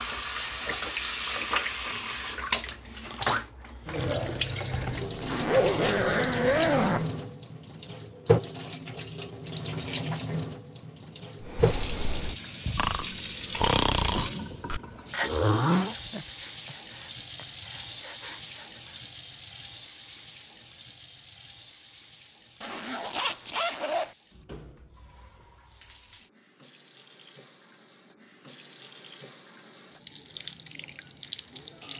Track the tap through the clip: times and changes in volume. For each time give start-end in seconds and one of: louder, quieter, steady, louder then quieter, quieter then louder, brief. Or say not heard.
0.0-31.9 quieter.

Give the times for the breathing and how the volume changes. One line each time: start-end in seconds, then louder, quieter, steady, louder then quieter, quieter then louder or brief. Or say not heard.
11.4-19.0 louder then quieter.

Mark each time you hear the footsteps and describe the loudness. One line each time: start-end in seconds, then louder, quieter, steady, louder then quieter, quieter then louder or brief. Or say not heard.
not heard.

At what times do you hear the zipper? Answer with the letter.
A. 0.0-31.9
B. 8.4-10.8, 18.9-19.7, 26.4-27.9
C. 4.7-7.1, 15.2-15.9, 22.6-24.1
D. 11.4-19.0
C.